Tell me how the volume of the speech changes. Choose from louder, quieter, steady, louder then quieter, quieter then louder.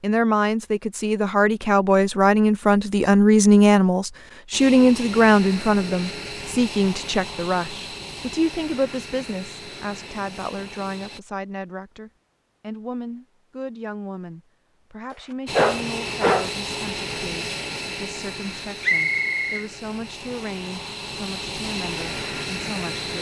quieter.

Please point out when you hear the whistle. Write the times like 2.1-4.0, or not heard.
18.8-19.6.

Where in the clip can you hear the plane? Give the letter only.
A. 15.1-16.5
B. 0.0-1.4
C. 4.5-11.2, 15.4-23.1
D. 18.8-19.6
C.